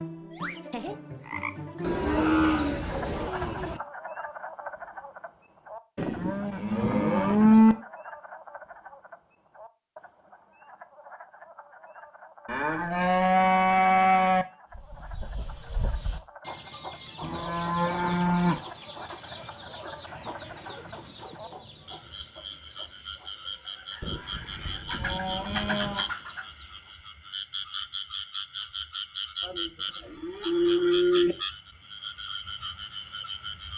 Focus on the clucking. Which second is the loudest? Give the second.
26 s.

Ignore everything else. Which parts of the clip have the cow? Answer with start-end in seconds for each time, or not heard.
1.8-3.8, 6.0-7.8, 12.4-14.4, 17.2-18.6, 24.0-26.1, 29.4-31.4.